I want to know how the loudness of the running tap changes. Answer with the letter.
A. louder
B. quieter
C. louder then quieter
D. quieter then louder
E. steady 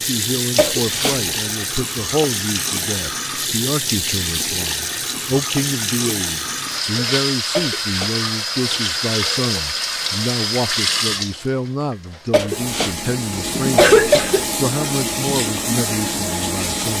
E.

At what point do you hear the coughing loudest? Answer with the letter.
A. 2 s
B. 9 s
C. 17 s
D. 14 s
D.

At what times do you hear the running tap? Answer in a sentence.
You can hear the running tap from 0.0 to 16.9 s.